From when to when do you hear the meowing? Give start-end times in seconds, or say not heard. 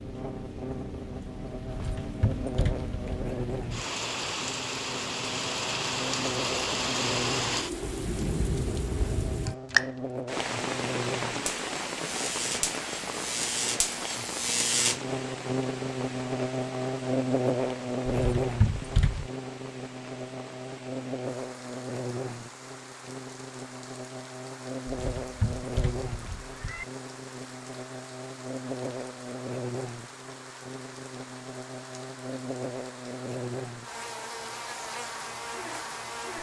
1.6-3.4, 18.1-19.3, 24.9-26.9.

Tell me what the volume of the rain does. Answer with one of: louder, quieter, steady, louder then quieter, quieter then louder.
quieter.